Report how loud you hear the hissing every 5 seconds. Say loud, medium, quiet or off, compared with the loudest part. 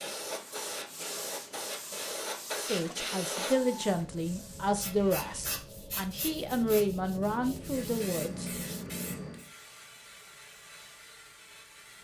loud, loud, quiet.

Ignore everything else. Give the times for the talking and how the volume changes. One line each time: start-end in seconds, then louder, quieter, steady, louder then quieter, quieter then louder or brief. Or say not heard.
2.5-8.5 steady.